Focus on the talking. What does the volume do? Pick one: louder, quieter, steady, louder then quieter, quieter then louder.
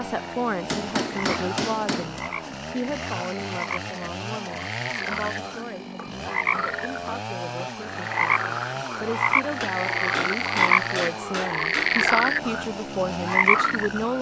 quieter then louder.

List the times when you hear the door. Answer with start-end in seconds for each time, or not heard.
not heard.